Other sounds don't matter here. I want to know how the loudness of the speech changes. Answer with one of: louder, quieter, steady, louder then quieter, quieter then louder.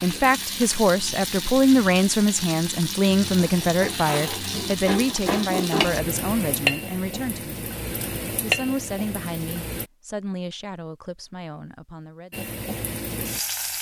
quieter.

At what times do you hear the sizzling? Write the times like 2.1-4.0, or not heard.
0.0-9.9, 12.3-13.7.